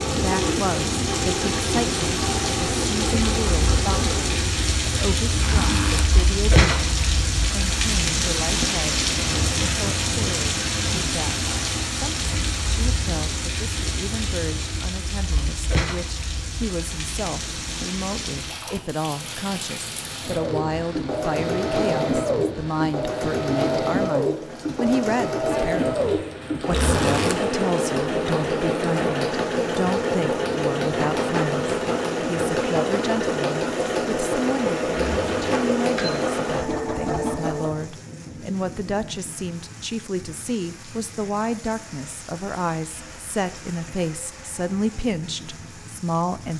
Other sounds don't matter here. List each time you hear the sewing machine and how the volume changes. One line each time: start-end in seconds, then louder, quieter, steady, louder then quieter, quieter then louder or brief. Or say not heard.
0.0-4.7 steady
20.2-37.9 steady.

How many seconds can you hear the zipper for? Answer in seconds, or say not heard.
2 s.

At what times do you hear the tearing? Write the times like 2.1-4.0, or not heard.
not heard.